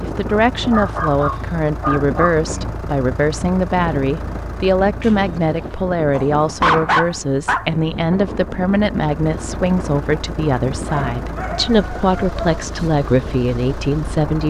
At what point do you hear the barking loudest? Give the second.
7 s.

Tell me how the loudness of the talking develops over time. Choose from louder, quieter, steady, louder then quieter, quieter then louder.
steady.